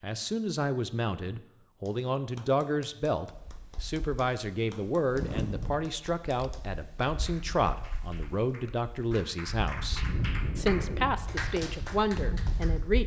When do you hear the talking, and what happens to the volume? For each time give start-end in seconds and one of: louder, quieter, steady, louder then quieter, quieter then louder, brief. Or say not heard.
0.0-13.0 steady.